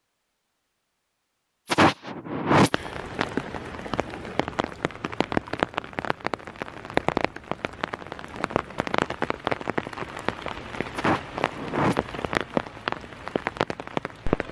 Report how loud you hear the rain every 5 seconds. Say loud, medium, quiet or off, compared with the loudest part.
medium, loud, loud.